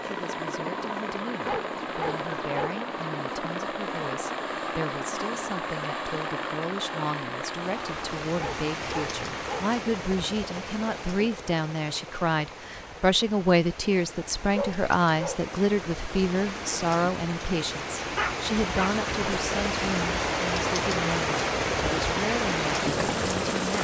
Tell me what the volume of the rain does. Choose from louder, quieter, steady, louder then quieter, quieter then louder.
quieter then louder.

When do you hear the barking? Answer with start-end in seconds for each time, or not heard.
1.4-2.8, 8.3-9.7, 14.6-15.4, 18.1-18.9.